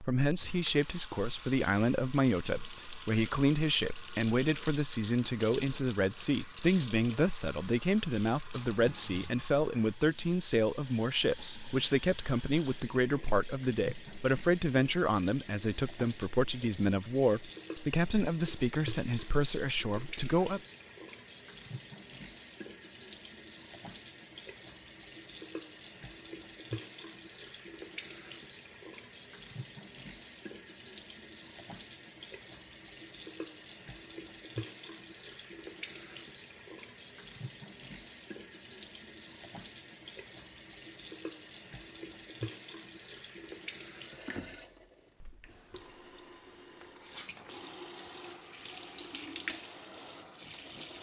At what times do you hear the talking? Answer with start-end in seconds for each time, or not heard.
0.0-20.6.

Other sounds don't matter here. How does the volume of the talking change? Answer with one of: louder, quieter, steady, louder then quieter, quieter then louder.
steady.